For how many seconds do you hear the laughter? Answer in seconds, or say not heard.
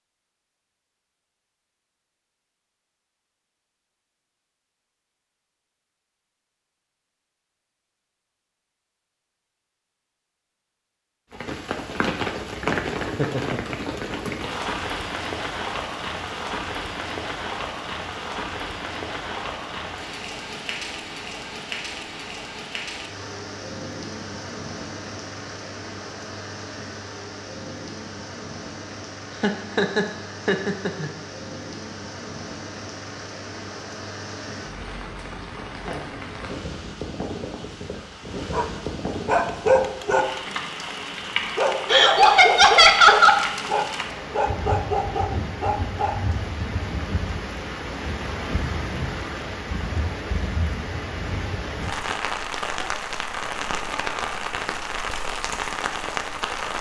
4 s.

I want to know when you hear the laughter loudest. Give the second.
43 s.